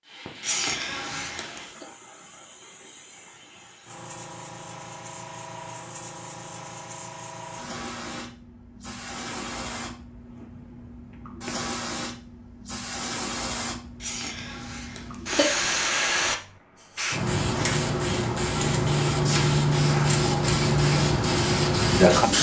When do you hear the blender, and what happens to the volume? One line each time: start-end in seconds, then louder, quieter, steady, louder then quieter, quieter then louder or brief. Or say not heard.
not heard.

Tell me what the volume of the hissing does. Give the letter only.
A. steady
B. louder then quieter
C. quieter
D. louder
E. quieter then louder
D.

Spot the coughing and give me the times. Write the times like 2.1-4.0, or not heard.
0.4-1.9, 14.0-15.5.